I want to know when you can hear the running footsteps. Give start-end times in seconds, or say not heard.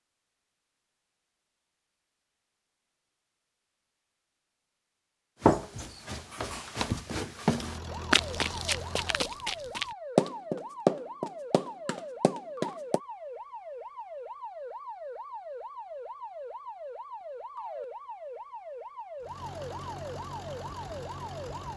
5.4-13.0.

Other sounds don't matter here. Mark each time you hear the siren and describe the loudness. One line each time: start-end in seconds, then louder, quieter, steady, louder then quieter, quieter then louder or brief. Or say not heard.
7.8-21.7 steady.